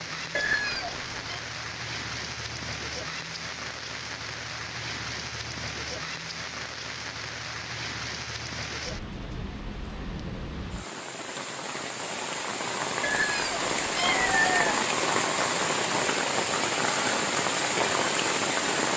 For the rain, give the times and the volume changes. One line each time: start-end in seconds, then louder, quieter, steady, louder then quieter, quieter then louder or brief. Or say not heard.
0.0-18.9 louder.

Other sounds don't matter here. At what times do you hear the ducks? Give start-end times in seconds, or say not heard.
not heard.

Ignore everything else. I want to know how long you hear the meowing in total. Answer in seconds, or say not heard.
3 s.